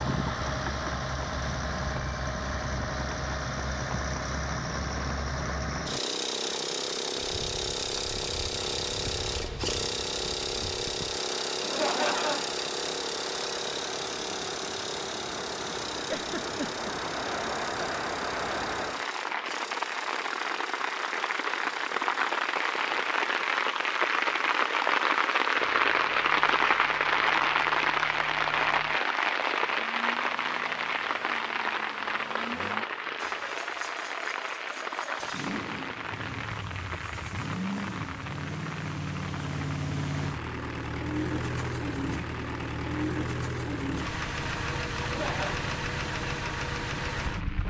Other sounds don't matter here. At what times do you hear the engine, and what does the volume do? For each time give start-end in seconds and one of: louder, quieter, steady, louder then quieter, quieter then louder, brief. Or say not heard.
0.0-47.6 quieter then louder.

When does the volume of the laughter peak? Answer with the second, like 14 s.
12 s.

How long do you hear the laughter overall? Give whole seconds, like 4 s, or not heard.
2 s.